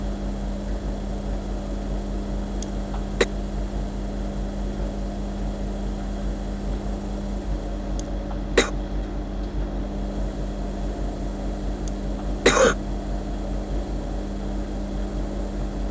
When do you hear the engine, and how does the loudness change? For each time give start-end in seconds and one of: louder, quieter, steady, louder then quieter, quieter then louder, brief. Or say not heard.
0.0-15.8 steady.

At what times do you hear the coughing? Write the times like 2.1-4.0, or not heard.
2.6-3.2, 8.0-8.7, 11.8-12.8.